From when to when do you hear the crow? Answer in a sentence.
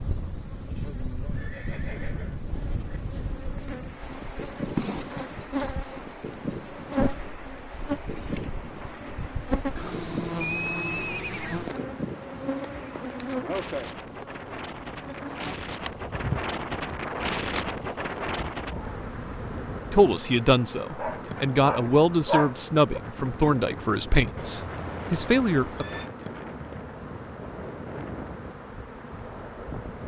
The crow can't be heard in this clip.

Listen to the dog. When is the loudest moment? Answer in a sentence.
The volume of the dog peaks at 22 seconds.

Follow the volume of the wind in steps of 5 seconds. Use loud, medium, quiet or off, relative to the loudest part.
medium, medium, medium, loud, medium, medium.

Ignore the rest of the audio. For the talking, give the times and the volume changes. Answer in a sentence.
The talking can be heard from 19.9 to 25.9 s, at a steady volume.